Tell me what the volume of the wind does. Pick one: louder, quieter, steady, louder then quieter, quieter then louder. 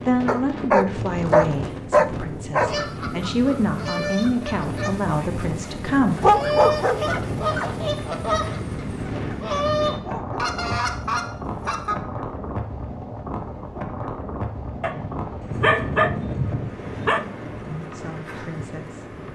steady.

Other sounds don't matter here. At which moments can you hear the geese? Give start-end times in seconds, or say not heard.
2.6-11.9.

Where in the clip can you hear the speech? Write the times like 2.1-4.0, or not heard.
0.1-6.2, 17.6-19.1.